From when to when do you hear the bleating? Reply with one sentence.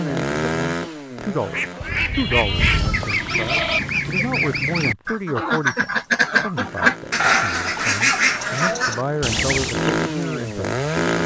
The bleating can be heard from 1.8 to 3.8 s and from 7.2 to 8.9 s.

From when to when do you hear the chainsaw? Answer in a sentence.
The chainsaw can be heard from 0.0 to 3.2 s and from 6.5 to 11.2 s.